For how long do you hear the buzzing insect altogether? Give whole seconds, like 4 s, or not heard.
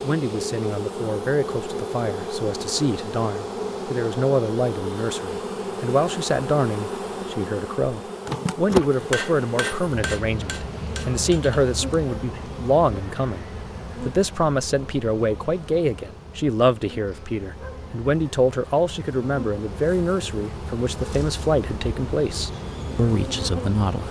24 s.